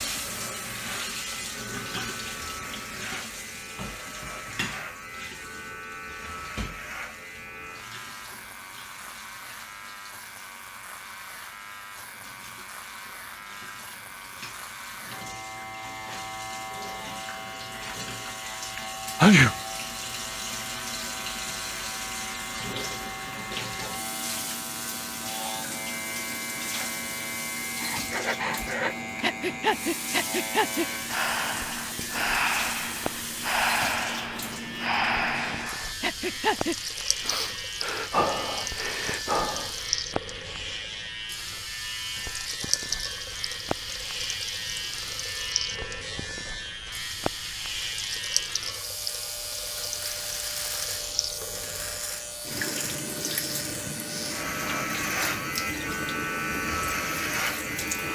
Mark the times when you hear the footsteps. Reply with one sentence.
The footsteps can't be heard in this clip.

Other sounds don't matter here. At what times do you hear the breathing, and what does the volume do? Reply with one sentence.
You can hear the breathing from 27.8 to 39.8 s, at a steady volume.